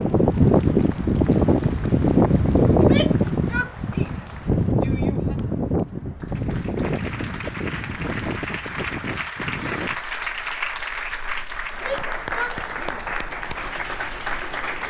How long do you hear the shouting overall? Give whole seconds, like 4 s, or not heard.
4 s.